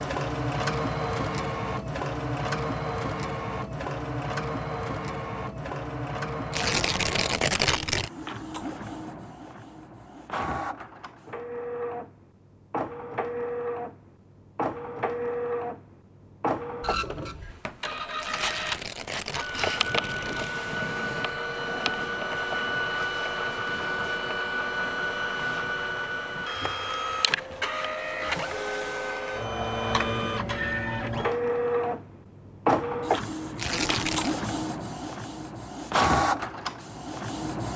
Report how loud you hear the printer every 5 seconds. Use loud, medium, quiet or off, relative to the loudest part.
loud, medium, medium, loud, loud, loud, loud, loud.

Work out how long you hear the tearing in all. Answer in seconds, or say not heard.
5 s.